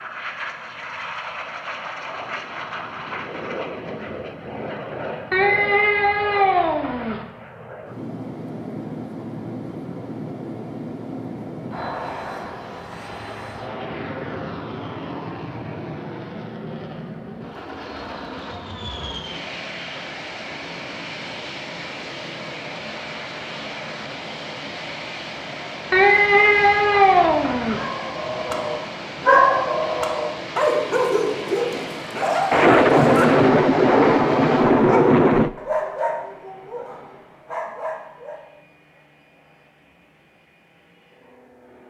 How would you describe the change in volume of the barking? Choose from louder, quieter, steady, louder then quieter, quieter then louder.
quieter.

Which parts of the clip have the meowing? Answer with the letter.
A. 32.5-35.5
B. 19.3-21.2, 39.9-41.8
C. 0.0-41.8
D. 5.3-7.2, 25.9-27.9
D.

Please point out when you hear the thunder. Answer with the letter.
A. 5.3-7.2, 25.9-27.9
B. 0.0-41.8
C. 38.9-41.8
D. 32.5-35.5
D.